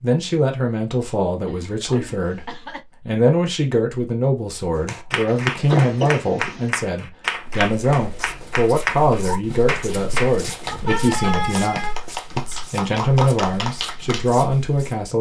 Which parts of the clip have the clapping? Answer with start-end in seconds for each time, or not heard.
4.8-14.2.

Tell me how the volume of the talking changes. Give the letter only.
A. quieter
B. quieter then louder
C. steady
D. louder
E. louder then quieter
C.